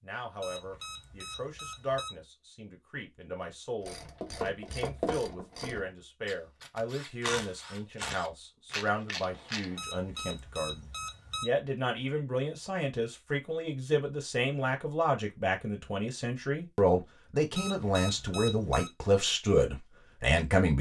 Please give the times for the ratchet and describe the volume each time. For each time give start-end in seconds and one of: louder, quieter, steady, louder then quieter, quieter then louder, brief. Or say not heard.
3.8-9.8 quieter then louder.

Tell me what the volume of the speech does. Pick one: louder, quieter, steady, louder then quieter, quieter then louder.
louder.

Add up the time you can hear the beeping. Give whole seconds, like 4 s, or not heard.
5 s.